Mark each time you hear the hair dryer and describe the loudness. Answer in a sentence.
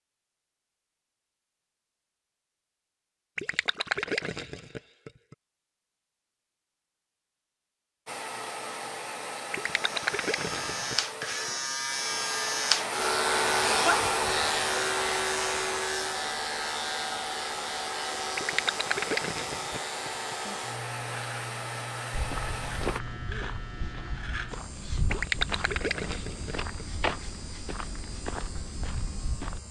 The hair dryer can be heard from 8.1 to 23.0 s, getting louder then quieter.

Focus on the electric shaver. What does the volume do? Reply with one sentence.
The loudness of the electric shaver goes down.